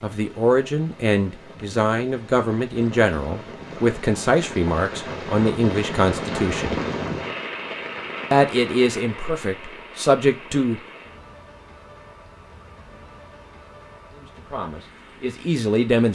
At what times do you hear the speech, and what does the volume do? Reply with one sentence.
You can hear the speech from 0.0 to 6.8 s, at a steady volume; briefly from 8.3 to 10.8 s; and briefly from 14.2 to 16.0 s.